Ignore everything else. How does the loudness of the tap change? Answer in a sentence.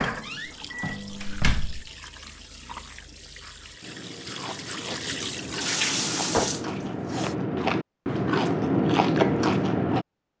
The loudness of the tap goes up.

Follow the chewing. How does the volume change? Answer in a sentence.
The loudness of the chewing goes up.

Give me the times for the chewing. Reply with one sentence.
The chewing can be heard from 0.5 to 10.1 s.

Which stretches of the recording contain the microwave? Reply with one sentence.
The microwave can be heard from 0.0 to 1.5 s.